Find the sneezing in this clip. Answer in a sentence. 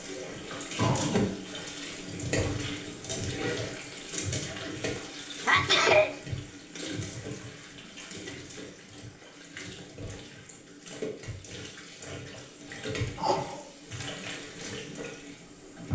The sneezing can be heard from 0.5 to 1.3 s, from 5.4 to 6.1 s and from 13.2 to 13.7 s.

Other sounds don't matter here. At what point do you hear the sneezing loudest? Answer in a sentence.
The loudest moment of the sneezing is at 6 seconds.